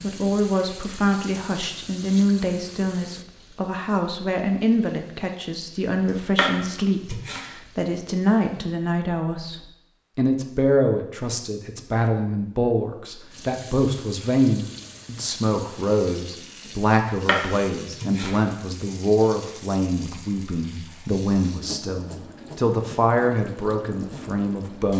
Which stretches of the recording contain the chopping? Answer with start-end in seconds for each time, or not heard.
6.3-7.5, 17.2-18.4.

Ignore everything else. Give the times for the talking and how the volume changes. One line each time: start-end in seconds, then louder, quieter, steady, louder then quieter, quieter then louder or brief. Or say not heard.
0.0-24.9 steady.